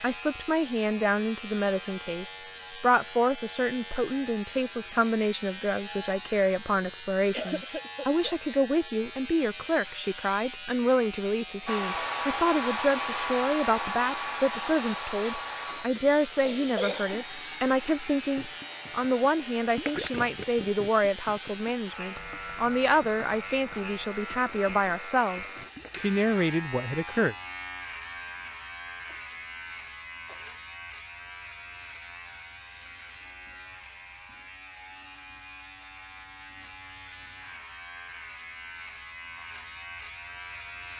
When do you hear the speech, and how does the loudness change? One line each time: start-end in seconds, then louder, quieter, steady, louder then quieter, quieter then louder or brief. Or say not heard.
0.0-27.4 steady.